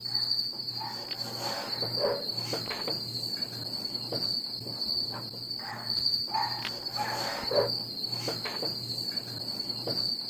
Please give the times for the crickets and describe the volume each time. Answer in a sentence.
You can hear the crickets from 0.0 to 10.2 s, at a steady volume.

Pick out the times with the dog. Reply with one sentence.
You can hear the dog from 0.1 to 2.9 s and from 5.6 to 7.7 s.